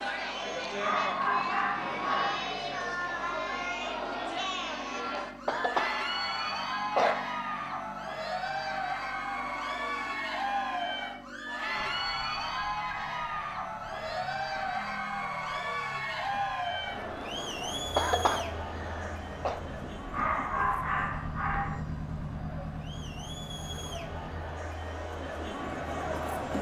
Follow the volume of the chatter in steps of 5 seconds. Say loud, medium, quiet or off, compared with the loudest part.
loud, loud, loud, loud, medium, loud.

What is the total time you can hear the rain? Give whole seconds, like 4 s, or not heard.
not heard.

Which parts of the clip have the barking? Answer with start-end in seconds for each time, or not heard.
0.8-2.5, 20.1-21.8.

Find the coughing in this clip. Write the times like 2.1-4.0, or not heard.
5.5-7.2, 17.9-19.6.